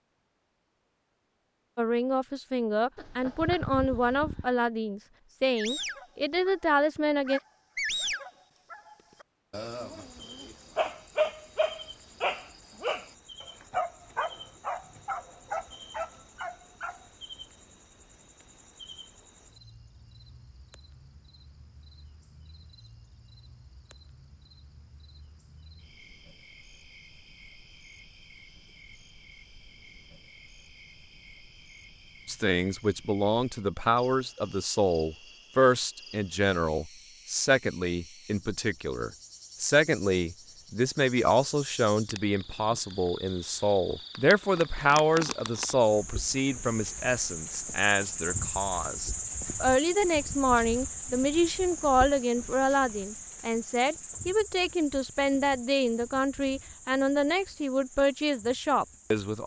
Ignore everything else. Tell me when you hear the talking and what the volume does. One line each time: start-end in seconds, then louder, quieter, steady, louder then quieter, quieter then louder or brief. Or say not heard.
1.8-7.4 steady
32.2-59.4 steady.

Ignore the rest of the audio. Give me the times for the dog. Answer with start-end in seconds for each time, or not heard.
5.5-17.1.